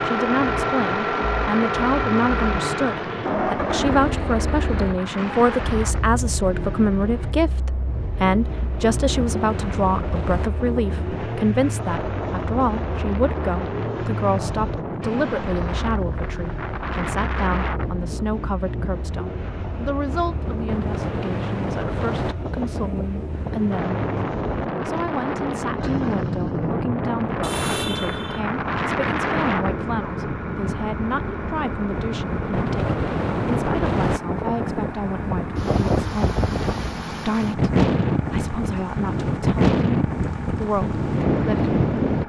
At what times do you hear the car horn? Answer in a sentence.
The car horn can be heard from 27.4 to 28.4 s.